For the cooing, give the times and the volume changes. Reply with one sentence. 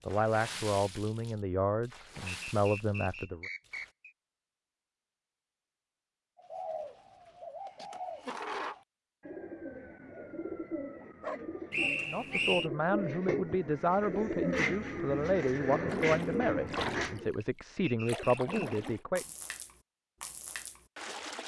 You can hear the cooing from 6.3 to 17.3 s, getting louder.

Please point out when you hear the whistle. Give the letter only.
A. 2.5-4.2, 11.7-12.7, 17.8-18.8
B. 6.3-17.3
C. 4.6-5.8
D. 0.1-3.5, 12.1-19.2
A.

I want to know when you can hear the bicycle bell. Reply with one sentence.
You can't hear the bicycle bell here.